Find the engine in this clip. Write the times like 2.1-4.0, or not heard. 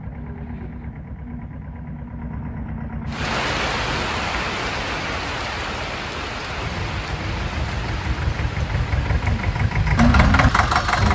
0.0-3.5, 6.5-11.0.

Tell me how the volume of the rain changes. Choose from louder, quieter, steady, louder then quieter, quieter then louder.
quieter.